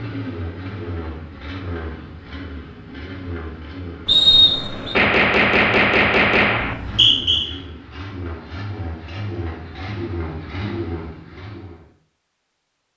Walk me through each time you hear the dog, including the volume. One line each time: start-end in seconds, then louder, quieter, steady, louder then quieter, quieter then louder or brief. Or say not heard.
not heard.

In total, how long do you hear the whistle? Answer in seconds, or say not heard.
2 s.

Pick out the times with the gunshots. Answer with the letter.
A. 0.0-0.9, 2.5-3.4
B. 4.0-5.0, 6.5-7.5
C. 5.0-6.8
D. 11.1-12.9
C.